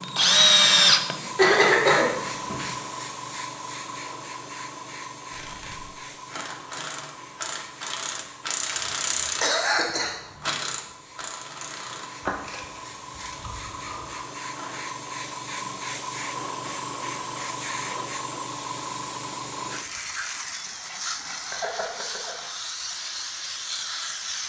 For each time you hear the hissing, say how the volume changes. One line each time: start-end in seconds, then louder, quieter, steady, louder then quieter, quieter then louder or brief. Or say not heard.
0.0-24.4 quieter then louder.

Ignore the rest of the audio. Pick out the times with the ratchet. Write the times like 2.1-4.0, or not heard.
5.3-14.8.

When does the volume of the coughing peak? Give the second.
2 s.